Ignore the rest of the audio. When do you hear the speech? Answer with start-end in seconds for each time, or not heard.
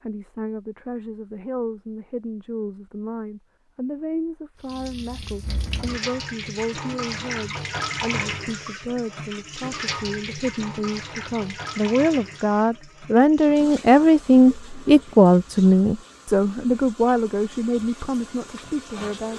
0.0-19.3.